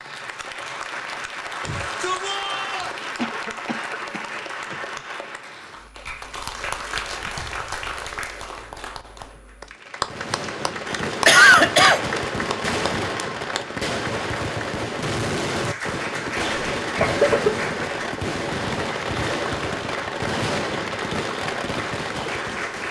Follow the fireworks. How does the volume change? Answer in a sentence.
The volume of the fireworks stays about the same.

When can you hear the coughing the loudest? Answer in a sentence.
The loudest moment of the coughing is at 11 seconds.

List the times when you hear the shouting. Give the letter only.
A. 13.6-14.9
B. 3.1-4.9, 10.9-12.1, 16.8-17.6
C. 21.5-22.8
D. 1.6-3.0
D.